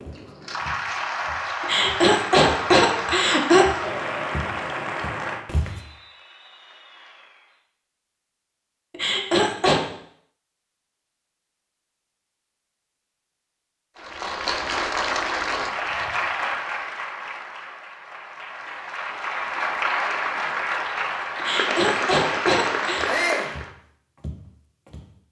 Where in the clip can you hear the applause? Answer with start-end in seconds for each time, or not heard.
0.0-7.7, 13.9-23.7.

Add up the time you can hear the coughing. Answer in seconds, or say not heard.
5 s.